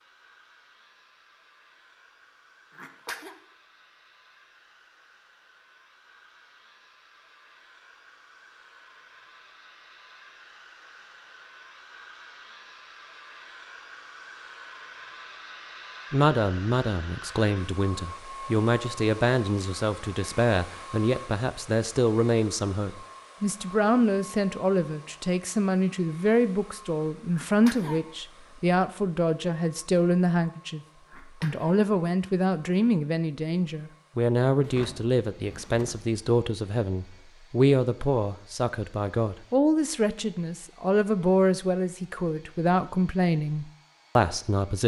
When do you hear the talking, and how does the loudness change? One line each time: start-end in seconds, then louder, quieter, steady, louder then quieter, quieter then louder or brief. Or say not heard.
16.1-30.8 steady
31.4-44.8 steady.